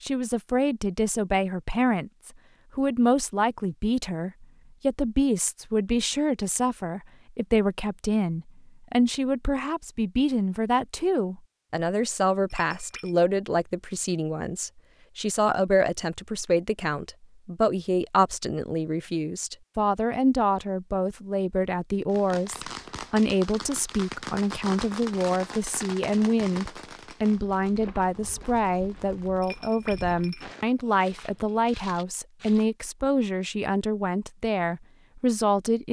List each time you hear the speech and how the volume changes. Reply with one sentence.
The speech can be heard from 0.0 to 35.8 s, at a steady volume.